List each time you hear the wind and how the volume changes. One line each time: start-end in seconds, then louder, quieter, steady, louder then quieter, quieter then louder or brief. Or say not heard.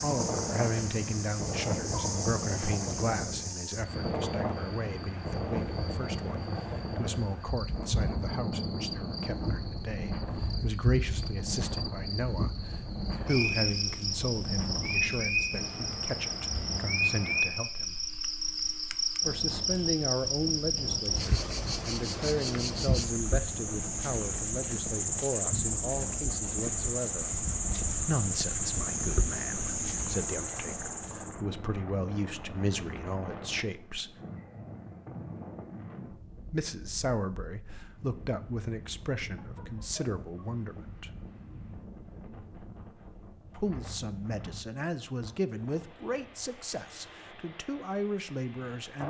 0.0-49.0 quieter.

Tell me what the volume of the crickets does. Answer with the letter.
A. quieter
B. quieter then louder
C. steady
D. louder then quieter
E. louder
E.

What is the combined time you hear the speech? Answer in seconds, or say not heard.
42 s.